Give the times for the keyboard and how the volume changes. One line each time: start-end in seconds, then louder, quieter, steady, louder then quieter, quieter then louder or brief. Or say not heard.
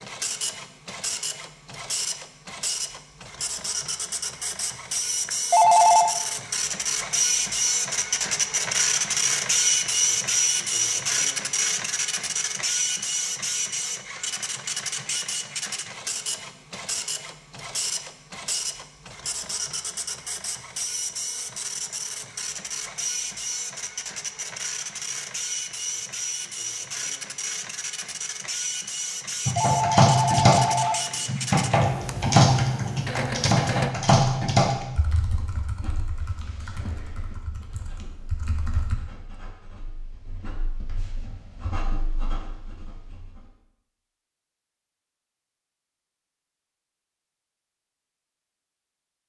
29.4-39.0 quieter.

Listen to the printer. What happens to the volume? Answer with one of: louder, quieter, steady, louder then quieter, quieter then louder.
louder then quieter.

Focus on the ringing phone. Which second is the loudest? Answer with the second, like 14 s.
6 s.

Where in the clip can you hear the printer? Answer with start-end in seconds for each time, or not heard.
0.0-34.0.